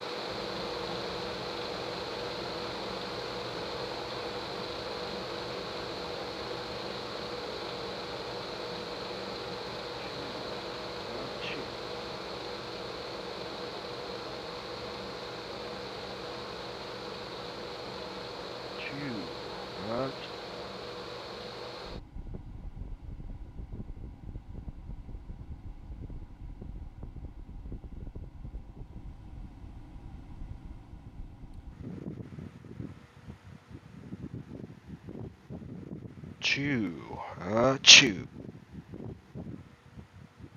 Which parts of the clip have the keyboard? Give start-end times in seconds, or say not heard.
not heard.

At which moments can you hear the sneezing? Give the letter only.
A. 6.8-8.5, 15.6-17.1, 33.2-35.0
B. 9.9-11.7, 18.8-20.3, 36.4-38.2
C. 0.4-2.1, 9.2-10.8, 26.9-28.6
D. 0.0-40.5
B.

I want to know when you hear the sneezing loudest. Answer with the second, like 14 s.
38 s.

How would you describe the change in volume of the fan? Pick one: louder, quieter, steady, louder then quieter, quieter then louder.
quieter.